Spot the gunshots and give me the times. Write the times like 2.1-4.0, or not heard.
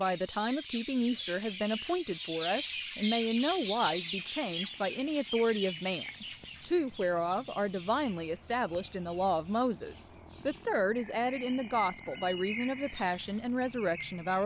not heard.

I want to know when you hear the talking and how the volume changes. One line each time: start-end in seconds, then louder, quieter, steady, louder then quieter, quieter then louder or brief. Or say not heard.
0.0-14.4 steady.